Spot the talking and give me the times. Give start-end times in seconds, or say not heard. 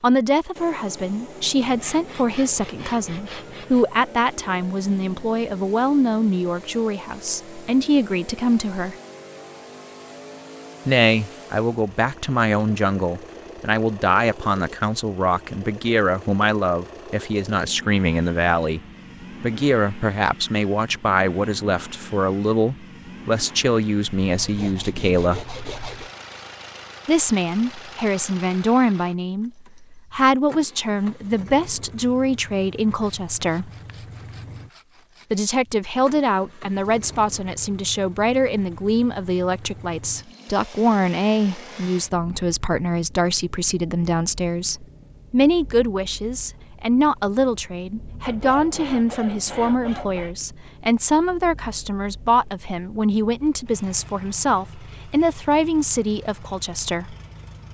0.0-8.9, 10.8-18.8, 19.4-25.4, 27.1-33.7, 35.3-57.1.